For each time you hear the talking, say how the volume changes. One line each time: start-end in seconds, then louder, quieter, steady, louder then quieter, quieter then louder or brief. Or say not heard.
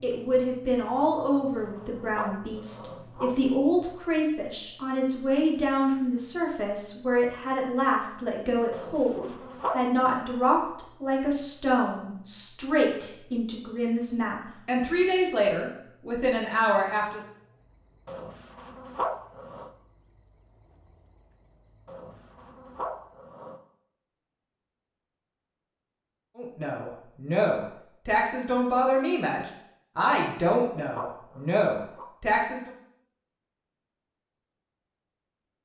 0.0-17.2 steady
26.4-32.7 steady.